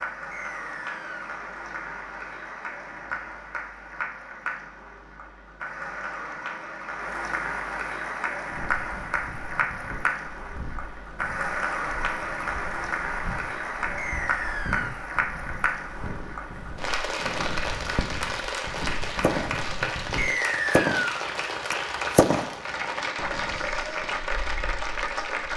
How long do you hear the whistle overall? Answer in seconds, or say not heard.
3 s.